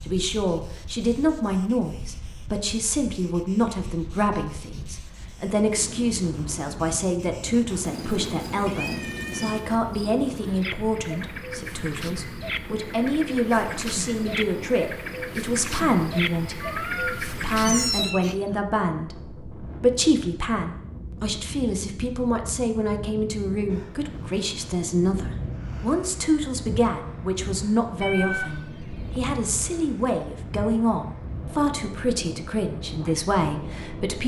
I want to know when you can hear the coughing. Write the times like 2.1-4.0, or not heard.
not heard.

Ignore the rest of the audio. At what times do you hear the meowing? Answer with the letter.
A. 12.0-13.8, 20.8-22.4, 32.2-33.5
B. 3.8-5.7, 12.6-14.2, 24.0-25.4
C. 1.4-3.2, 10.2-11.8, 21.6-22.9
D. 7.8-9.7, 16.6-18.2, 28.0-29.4
D.